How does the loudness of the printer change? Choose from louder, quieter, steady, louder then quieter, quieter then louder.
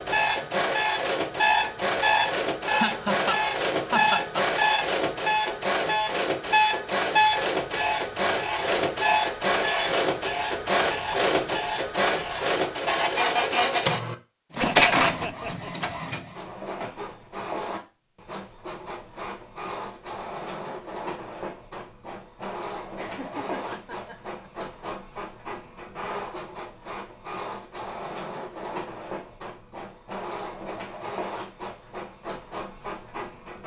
quieter.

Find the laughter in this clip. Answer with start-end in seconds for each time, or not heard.
2.6-4.5, 14.6-15.9, 22.9-24.4.